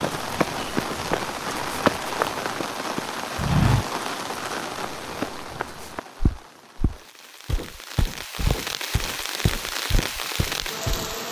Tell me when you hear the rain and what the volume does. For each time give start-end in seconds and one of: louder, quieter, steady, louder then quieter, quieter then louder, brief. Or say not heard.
0.0-11.2 quieter then louder.